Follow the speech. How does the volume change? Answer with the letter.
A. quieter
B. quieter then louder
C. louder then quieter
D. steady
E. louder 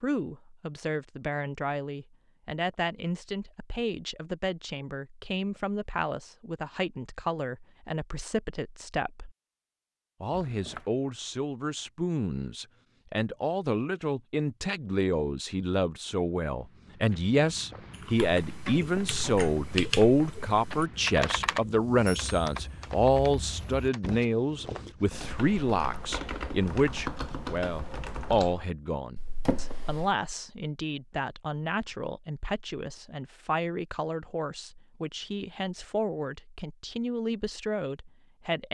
C.